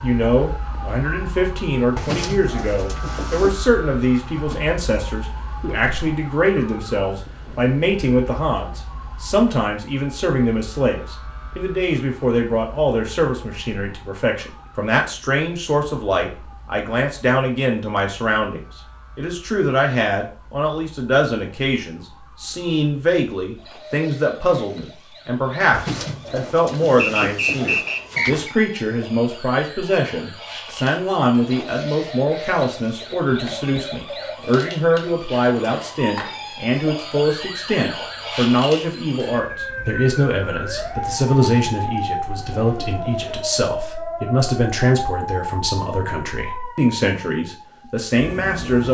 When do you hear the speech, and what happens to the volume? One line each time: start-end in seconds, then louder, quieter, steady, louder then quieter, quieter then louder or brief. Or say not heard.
0.0-48.8 steady.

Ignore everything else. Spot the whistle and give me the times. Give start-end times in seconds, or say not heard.
26.9-28.6.